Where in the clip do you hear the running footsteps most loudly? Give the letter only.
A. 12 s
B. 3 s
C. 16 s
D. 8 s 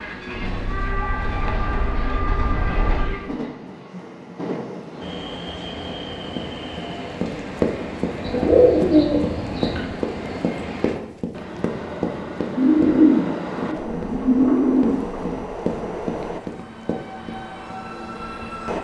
D.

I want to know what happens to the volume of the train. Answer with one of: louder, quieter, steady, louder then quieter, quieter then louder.
steady.